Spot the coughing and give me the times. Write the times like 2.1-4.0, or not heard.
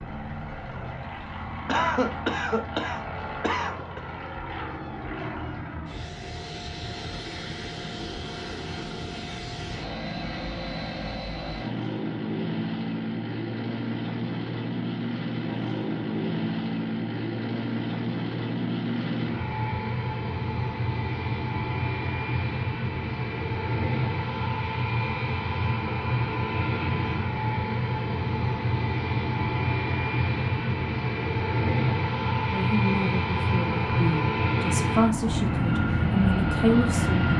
1.6-4.0.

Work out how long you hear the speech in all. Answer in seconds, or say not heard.
5 s.